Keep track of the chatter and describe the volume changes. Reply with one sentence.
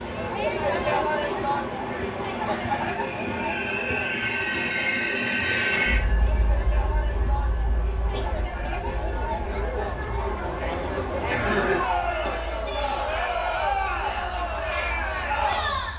The volume of the chatter goes down, then up.